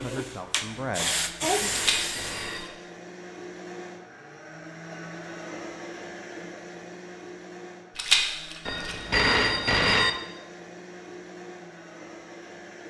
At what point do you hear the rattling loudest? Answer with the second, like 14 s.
8 s.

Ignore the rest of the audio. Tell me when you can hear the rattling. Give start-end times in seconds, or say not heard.
1.7-2.7, 8.0-8.9.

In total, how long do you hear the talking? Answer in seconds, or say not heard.
2 s.